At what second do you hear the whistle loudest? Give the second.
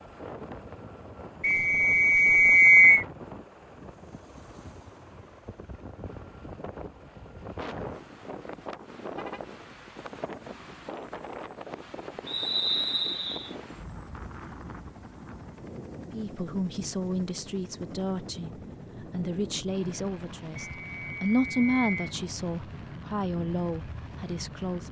3 s.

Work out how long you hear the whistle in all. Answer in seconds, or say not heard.
4 s.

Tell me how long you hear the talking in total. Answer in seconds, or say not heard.
9 s.